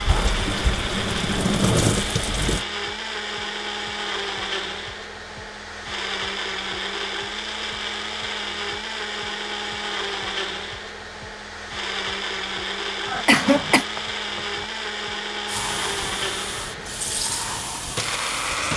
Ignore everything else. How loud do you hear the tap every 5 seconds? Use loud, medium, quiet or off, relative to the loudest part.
loud, off, off, medium.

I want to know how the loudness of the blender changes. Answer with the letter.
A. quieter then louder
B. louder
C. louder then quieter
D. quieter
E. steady
E.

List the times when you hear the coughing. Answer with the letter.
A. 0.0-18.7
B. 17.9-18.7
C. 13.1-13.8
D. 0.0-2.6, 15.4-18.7
C.